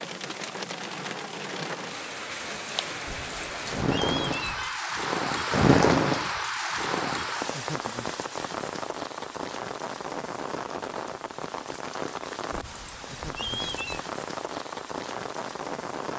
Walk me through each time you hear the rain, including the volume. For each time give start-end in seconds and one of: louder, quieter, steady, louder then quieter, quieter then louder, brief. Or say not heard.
0.0-16.1 louder then quieter.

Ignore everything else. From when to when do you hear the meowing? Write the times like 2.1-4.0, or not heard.
3.0-4.8, 12.5-14.1.